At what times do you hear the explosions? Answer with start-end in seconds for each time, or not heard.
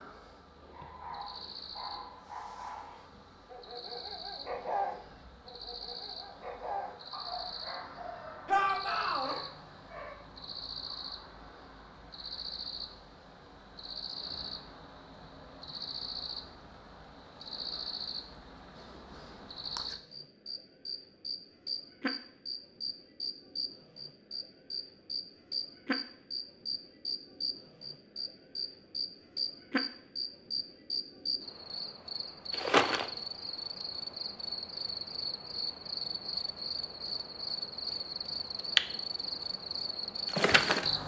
not heard.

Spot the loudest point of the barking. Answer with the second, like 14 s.
5 s.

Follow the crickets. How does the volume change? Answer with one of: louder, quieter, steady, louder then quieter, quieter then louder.
louder.